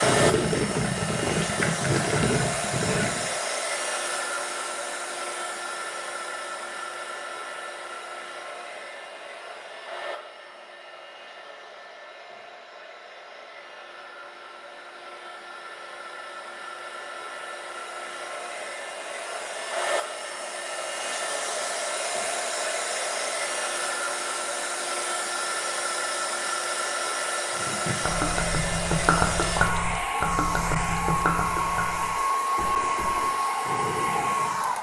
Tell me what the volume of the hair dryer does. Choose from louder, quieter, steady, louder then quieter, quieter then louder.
quieter then louder.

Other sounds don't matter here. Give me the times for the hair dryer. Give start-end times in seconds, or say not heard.
0.0-34.7.